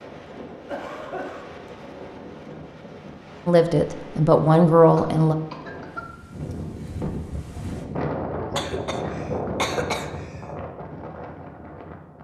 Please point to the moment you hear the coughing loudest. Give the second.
10 s.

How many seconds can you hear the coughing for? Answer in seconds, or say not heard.
4 s.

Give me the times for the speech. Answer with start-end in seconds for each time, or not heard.
3.5-5.3.